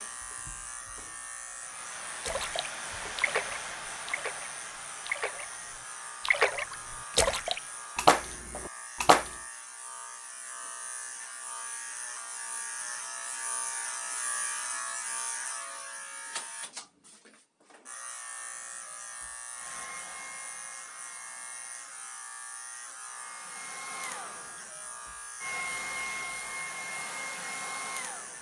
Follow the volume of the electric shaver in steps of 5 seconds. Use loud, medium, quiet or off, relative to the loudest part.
medium, medium, loud, loud, medium, medium.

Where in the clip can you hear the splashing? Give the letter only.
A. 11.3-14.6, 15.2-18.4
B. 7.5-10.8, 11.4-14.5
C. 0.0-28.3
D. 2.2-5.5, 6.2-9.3
D.